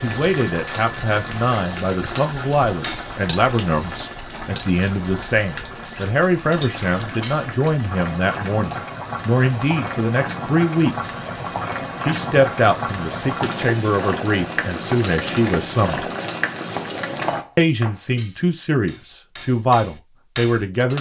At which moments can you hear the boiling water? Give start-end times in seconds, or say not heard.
0.0-17.4.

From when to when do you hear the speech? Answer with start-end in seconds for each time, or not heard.
0.0-11.1, 12.0-16.1, 17.6-20.9.